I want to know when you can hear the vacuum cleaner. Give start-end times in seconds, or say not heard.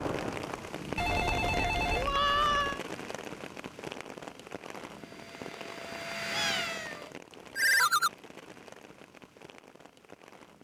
4.8-7.2.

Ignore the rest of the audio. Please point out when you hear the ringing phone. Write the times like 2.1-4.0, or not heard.
0.9-2.0, 7.5-8.1.